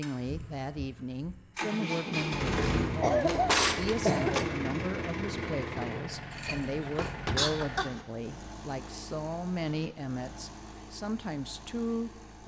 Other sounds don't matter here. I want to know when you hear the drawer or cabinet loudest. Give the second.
4 s.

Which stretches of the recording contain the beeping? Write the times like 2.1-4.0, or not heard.
not heard.